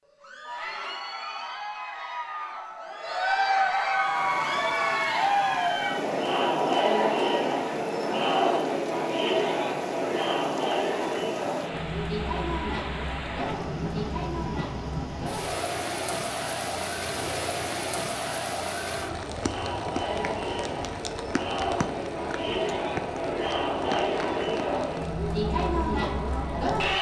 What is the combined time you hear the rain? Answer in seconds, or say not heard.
23 s.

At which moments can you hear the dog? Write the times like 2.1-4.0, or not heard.
not heard.